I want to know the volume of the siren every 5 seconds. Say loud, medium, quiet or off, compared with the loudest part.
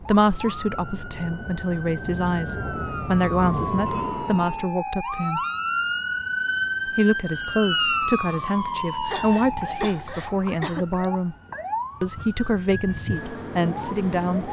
medium, loud, medium.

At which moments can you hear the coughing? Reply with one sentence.
The coughing can be heard from 9.1 to 11.1 s.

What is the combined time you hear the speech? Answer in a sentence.
You can hear the speech for 12 seconds altogether.